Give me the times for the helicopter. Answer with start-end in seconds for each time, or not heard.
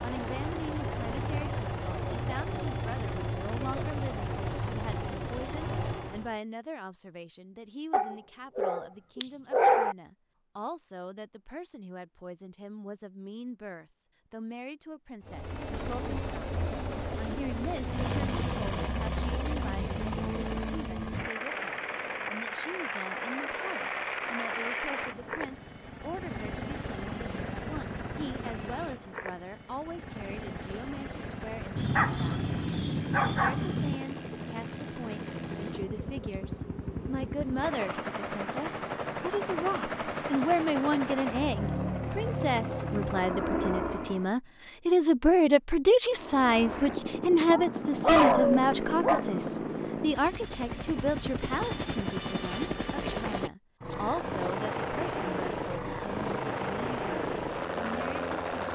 0.0-6.4, 15.2-44.4, 46.1-58.7.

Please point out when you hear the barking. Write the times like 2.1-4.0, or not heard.
7.9-9.9, 31.8-34.0, 47.5-49.2.